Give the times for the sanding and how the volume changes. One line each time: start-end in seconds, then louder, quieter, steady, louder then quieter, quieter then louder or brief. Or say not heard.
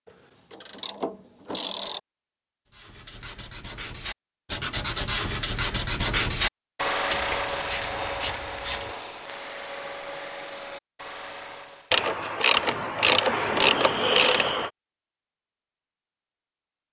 2.7-11.9 louder then quieter.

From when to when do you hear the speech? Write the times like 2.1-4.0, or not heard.
not heard.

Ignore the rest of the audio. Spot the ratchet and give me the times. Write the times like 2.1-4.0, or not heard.
0.1-2.0, 7.1-8.9, 11.9-14.7.